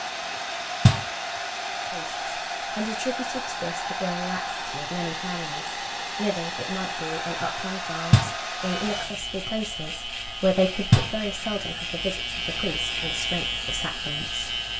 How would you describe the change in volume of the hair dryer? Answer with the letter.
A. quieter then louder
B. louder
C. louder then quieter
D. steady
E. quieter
E.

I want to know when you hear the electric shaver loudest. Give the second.
13 s.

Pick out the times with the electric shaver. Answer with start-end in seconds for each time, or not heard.
8.6-14.7.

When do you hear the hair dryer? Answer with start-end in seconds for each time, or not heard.
0.0-14.7.